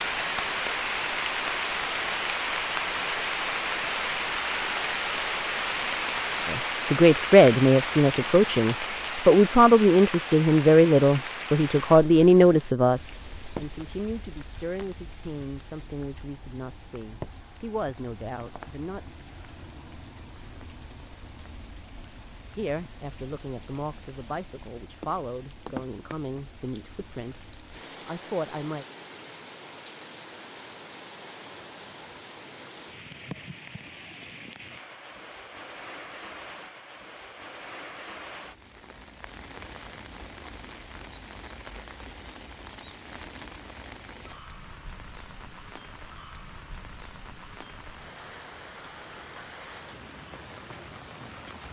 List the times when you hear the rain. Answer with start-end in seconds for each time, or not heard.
0.0-51.6.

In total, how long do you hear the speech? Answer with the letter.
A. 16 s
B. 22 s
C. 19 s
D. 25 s
C.